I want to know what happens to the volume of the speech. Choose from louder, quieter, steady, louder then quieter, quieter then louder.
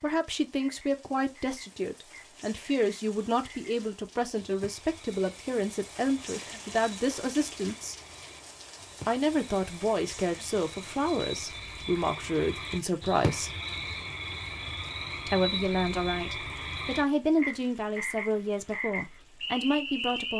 steady.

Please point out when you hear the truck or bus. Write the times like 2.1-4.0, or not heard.
not heard.